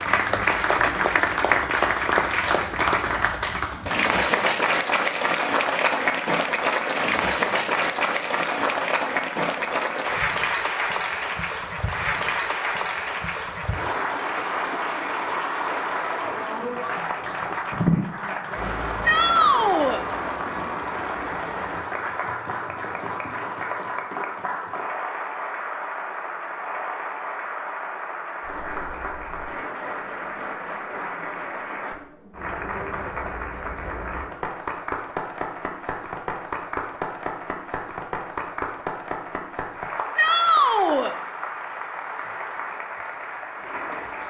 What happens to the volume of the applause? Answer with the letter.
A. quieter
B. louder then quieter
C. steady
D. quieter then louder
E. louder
A.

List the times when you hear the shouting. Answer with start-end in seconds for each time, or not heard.
19.1-20.0, 40.1-41.1.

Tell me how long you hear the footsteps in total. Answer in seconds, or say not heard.
not heard.